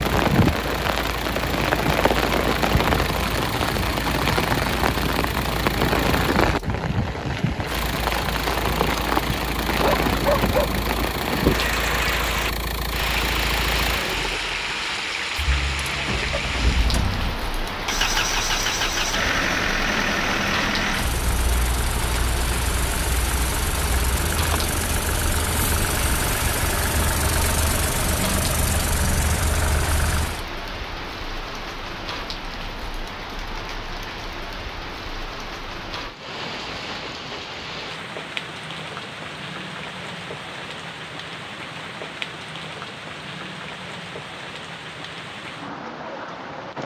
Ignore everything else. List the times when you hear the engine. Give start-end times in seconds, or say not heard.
0.1-30.4.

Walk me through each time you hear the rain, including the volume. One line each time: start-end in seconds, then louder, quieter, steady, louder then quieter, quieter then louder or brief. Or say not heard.
0.0-46.8 quieter.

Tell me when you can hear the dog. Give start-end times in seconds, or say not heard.
9.8-10.7.